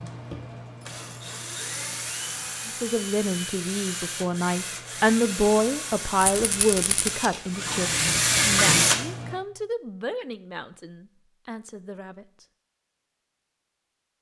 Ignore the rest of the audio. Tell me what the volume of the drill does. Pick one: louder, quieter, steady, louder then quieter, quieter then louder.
louder.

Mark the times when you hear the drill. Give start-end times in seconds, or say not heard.
0.0-9.4.